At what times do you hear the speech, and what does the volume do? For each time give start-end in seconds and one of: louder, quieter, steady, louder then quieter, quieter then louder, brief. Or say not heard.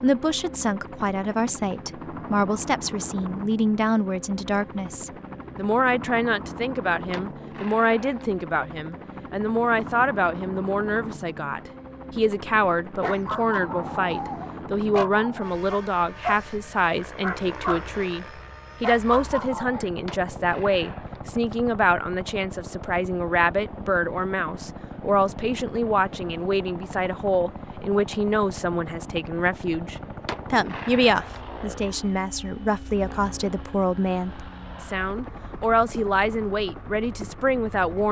0.0-38.0 steady.